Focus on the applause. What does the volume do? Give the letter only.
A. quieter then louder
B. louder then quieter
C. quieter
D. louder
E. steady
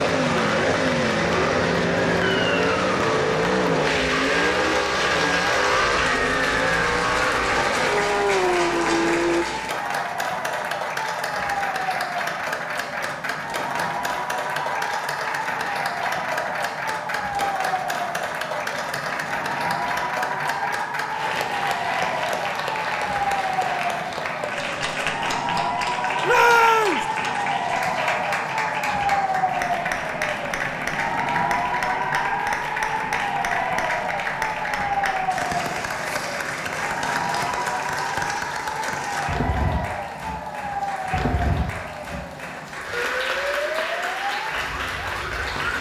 E.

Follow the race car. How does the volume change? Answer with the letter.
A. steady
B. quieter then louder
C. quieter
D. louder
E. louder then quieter
A.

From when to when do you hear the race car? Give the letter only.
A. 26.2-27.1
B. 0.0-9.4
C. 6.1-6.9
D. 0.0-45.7
B.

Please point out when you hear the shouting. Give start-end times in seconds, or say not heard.
26.2-27.1.